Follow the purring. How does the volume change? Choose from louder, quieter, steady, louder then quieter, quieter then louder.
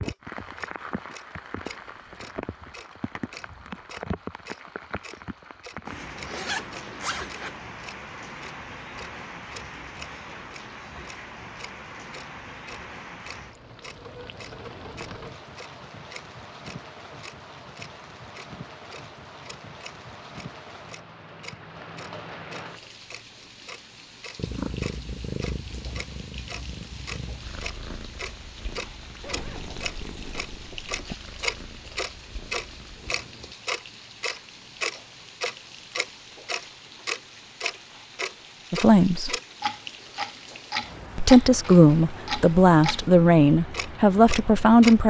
quieter.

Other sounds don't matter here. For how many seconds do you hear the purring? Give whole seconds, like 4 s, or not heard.
9 s.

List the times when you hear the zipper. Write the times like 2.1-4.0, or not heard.
5.8-7.6, 29.2-31.1.